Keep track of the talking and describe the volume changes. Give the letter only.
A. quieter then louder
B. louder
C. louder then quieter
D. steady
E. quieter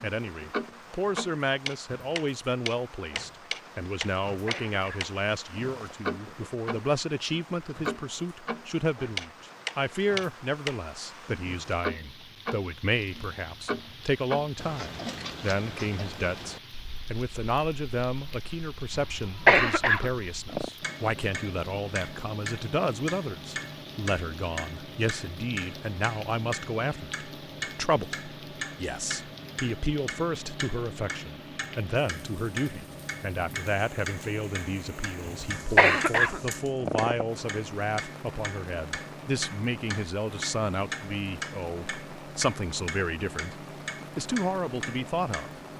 D.